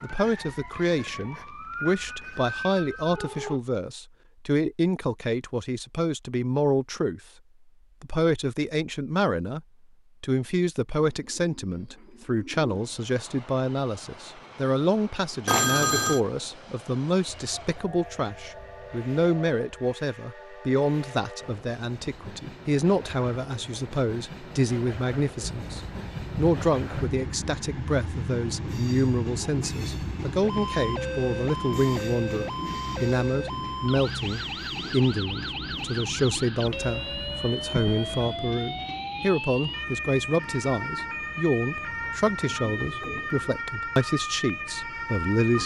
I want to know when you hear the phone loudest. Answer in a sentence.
The volume of the phone peaks at 16 seconds.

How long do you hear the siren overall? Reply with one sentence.
The siren can be heard for 24 seconds in total.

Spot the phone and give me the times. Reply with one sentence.
The phone can be heard from 15.4 to 16.2 s and from 36.6 to 38.4 s.